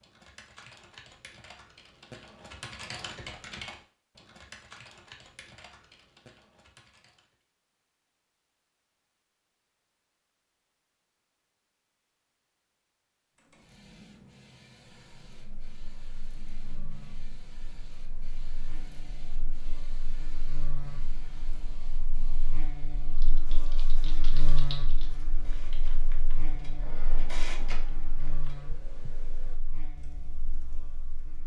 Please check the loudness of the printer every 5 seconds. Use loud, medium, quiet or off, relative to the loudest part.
off, off, medium, medium, medium, loud, off.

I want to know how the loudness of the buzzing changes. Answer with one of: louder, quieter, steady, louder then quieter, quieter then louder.
louder then quieter.